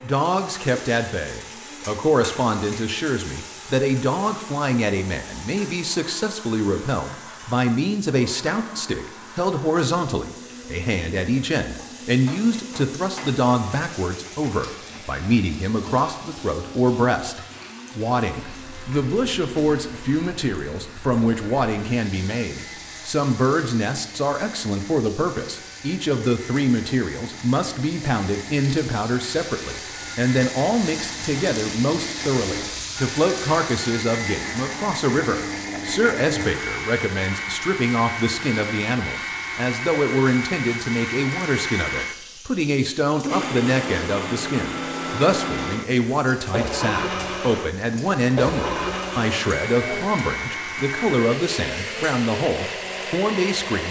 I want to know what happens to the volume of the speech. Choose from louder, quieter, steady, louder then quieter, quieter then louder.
steady.